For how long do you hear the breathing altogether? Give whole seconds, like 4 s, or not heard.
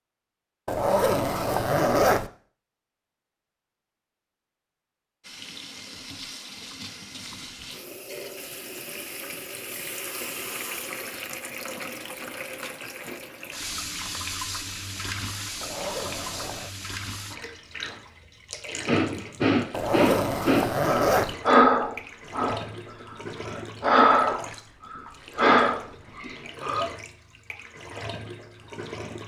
8 s.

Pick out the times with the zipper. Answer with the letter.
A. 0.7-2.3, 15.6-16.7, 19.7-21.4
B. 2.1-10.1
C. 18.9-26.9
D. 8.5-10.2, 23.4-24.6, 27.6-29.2
A.